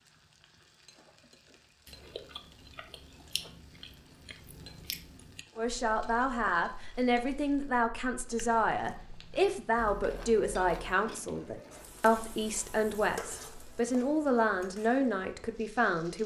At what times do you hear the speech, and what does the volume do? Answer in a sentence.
The speech can be heard from 5.5 to 16.2 s, at a steady volume.